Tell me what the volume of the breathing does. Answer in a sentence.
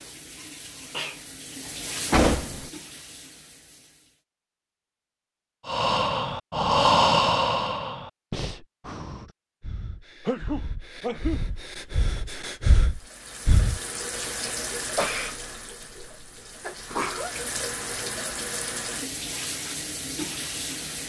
The volume of the breathing goes down, then up.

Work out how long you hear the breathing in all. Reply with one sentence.
The breathing can be heard for 8 seconds in total.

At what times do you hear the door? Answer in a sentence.
The door can be heard from 2.1 to 2.7 s.